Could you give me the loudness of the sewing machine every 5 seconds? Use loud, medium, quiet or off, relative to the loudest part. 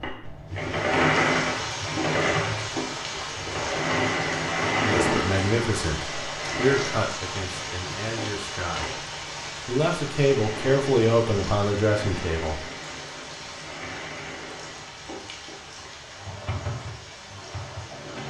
loud, medium, quiet, quiet.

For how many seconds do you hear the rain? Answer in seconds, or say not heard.
18 s.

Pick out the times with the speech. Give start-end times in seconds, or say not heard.
4.8-8.9, 9.7-12.6.